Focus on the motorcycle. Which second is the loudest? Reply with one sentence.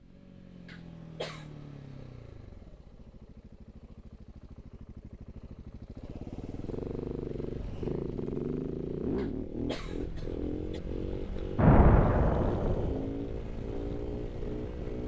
The loudest moment of the motorcycle is at 9 seconds.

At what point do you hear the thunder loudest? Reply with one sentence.
The volume of the thunder peaks at 12 seconds.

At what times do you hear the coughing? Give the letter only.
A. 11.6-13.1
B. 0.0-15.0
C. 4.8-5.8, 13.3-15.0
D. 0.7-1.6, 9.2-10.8
D.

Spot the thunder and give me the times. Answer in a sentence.
The thunder can be heard from 11.6 to 13.1 s.